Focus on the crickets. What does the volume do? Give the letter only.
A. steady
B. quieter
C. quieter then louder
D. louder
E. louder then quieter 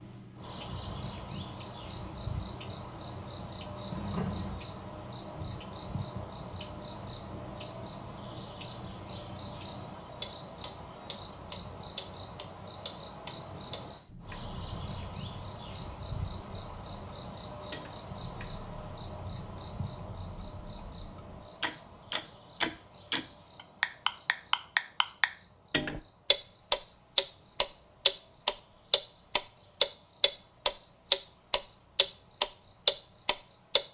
B.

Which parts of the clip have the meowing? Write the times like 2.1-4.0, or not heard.
3.9-4.6.